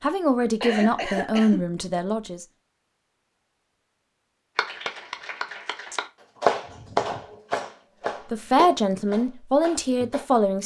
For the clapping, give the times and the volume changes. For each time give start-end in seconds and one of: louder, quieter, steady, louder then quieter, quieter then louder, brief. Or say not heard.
4.5-10.2 louder then quieter.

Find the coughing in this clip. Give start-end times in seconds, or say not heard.
0.4-1.6, 6.5-7.8.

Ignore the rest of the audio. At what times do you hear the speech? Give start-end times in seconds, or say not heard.
0.0-2.5, 8.3-10.6.